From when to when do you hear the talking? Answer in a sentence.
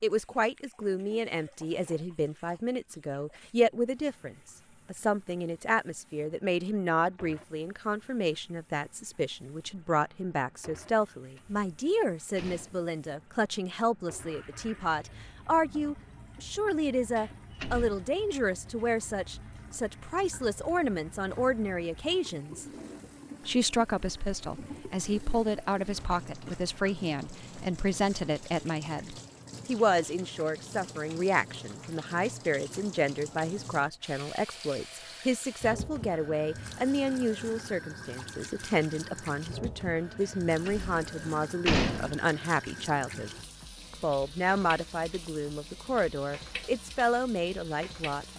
The talking can be heard from 0.0 to 22.6 s, from 23.4 to 43.3 s and from 43.9 to 48.3 s.